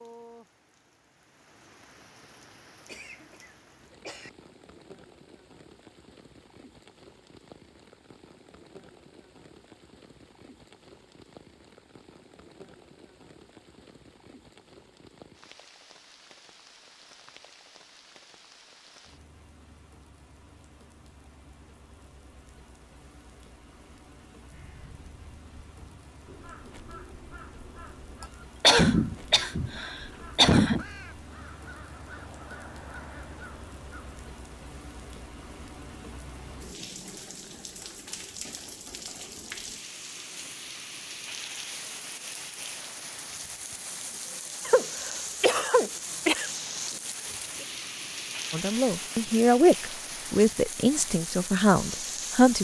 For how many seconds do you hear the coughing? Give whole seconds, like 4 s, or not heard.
6 s.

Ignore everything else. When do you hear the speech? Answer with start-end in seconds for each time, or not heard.
48.5-52.5.